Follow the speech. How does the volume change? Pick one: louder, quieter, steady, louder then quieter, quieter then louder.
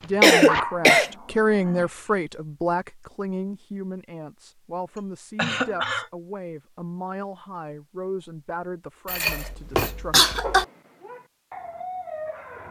quieter.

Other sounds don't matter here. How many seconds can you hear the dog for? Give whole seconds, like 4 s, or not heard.
4 s.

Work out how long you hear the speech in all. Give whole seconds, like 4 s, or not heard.
10 s.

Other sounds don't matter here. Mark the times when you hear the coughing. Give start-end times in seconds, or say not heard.
0.2-1.1, 5.3-6.1, 9.1-10.7.